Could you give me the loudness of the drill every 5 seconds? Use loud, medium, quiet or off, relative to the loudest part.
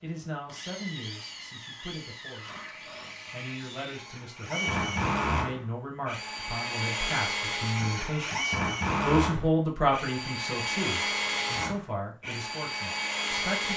medium, loud, loud.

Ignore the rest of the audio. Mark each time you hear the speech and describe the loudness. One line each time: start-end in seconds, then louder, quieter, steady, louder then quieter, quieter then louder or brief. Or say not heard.
0.0-2.6 brief
3.3-13.7 louder then quieter.